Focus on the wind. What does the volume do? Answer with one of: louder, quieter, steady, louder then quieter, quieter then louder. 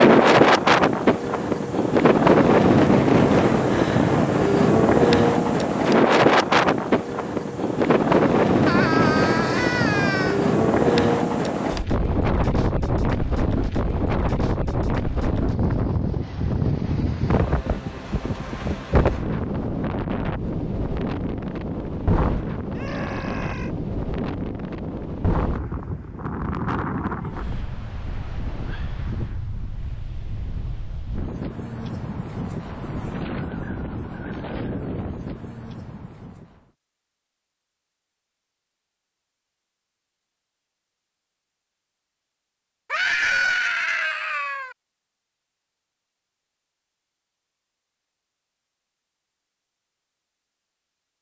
quieter.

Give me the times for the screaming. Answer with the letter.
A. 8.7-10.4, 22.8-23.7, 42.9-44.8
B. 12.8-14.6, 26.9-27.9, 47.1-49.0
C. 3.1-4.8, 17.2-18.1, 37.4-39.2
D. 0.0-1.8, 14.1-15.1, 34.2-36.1
A.